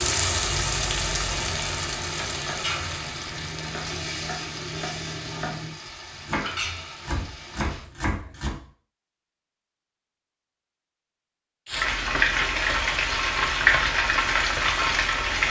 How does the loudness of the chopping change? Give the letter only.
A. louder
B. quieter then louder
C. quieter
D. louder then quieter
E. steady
A.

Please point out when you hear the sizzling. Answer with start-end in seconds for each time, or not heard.
0.0-7.8, 11.7-15.4.